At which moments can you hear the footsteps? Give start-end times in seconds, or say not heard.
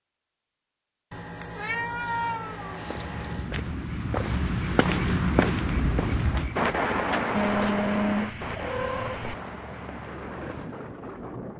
2.8-10.7.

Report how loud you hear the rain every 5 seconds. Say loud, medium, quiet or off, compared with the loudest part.
medium, loud, medium.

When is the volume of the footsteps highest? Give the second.
5 s.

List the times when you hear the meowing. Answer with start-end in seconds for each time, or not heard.
1.1-3.5, 7.3-9.3.